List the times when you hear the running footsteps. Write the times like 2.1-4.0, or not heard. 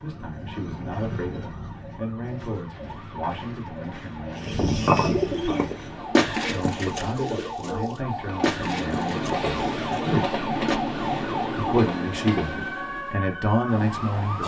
not heard.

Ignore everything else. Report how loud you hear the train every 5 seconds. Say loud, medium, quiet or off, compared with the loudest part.
medium, loud, loud.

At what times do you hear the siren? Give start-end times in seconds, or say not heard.
0.0-14.4.